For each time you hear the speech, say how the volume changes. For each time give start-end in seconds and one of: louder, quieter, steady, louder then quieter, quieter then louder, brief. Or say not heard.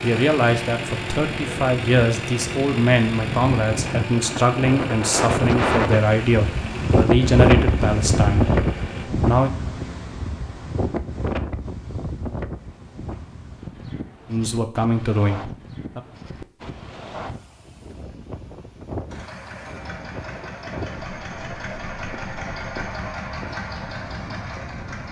0.0-9.5 steady
14.3-16.0 brief.